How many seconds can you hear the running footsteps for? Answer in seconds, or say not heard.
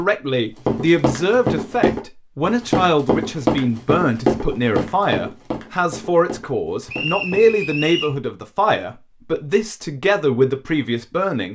7 s.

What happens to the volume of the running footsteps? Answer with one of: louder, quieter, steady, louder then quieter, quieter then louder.
quieter.